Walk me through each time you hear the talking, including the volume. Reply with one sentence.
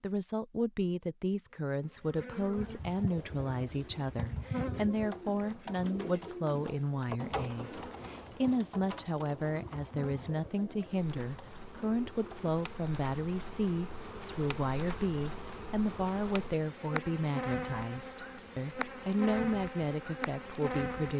You can hear the talking from 0.0 to 21.1 s, at a steady volume.